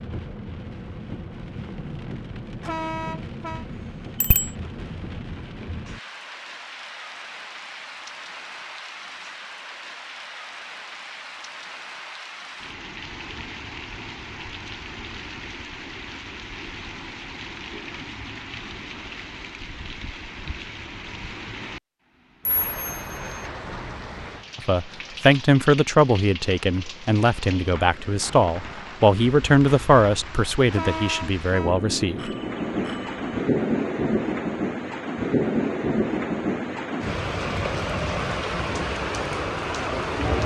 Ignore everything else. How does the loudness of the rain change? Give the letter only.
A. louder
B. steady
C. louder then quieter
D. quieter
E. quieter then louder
A.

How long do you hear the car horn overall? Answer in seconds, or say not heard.
2 s.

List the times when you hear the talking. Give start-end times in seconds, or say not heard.
24.6-32.3.